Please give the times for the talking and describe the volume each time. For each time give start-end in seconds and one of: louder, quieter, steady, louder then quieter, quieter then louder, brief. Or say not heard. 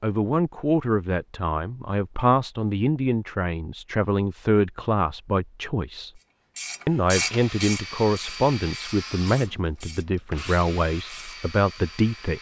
0.0-6.1 steady
6.8-12.3 steady.